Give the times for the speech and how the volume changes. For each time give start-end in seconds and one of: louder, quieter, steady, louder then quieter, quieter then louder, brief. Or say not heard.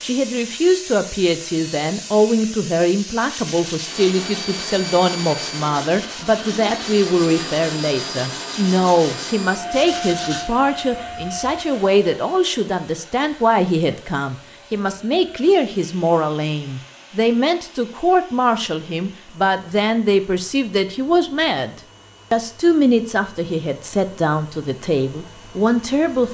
0.0-26.2 steady.